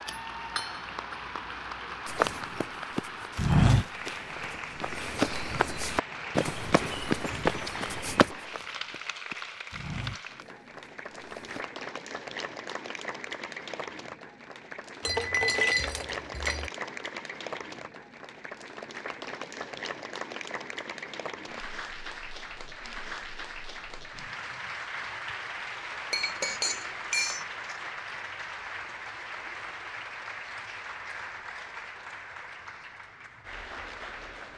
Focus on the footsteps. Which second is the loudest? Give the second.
4 s.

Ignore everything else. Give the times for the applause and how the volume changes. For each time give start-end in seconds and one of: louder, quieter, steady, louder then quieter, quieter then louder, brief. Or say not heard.
0.0-34.5 steady.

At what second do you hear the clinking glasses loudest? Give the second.
16 s.